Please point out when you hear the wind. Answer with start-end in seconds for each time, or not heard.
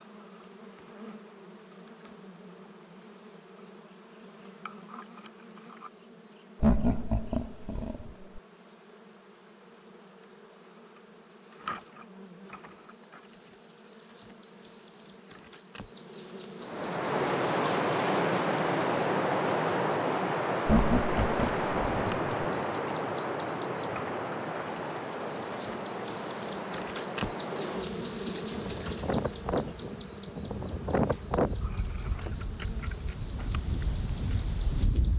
16.6-35.1.